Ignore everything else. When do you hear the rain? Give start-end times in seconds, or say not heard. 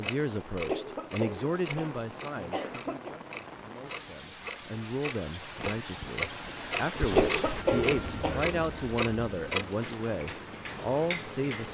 0.0-11.6.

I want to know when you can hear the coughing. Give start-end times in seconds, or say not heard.
0.7-3.1, 7.1-8.6.